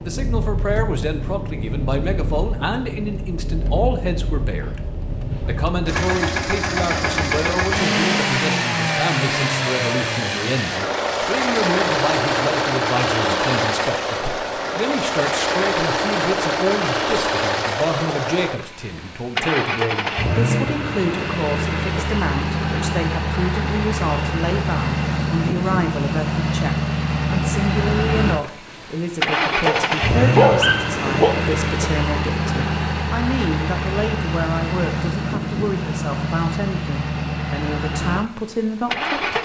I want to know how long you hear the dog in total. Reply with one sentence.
You can hear the dog for 2 seconds altogether.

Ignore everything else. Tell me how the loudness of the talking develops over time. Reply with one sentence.
The loudness of the talking stays about the same.